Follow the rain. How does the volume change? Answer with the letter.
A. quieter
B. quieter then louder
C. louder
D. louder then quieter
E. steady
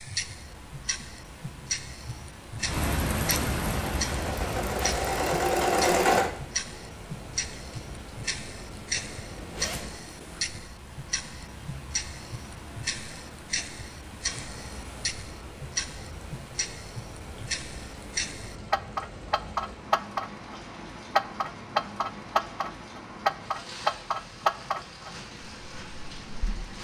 A.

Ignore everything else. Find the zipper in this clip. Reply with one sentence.
You can hear the zipper from 9.3 to 10.7 s.